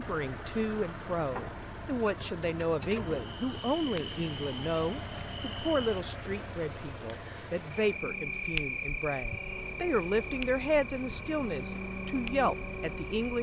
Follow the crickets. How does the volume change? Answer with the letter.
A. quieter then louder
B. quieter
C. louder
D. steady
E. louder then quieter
E.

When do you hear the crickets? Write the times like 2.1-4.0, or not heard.
3.0-13.3.